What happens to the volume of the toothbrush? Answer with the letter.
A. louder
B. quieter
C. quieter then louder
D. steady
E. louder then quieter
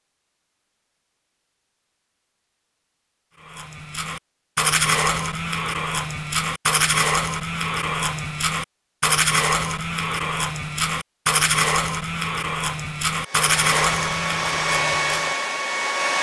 D.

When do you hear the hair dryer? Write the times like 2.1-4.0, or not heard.
13.2-16.1.